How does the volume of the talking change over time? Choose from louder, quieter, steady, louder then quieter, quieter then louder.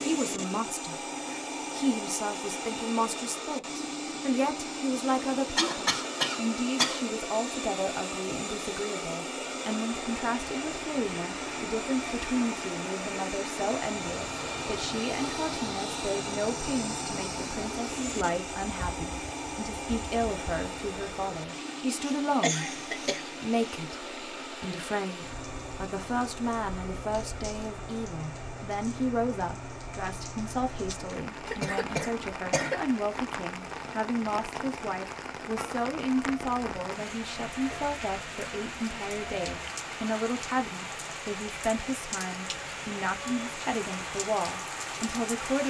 steady.